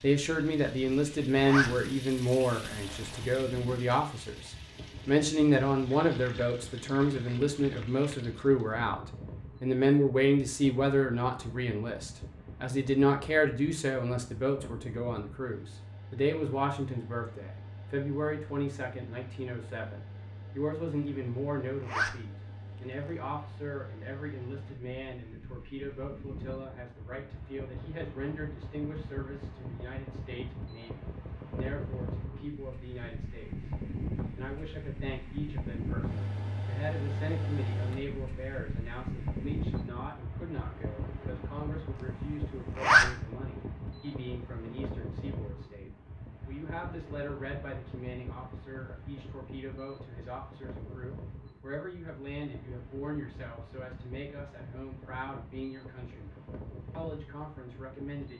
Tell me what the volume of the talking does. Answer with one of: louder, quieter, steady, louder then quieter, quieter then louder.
quieter.